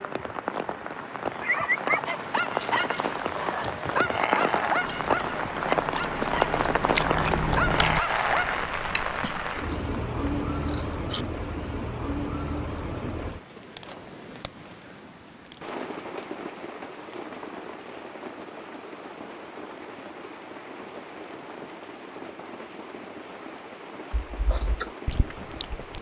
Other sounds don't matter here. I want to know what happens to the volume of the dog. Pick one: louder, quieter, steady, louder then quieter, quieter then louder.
quieter then louder.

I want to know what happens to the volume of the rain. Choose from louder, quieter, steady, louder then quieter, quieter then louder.
quieter.